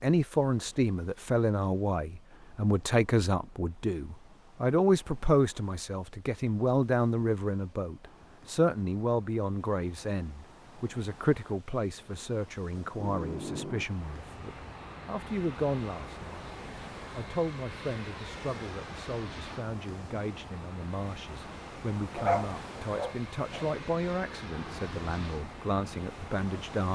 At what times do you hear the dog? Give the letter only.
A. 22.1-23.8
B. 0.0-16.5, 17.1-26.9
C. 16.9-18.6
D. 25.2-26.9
A.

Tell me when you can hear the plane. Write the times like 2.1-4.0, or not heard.
12.9-26.9.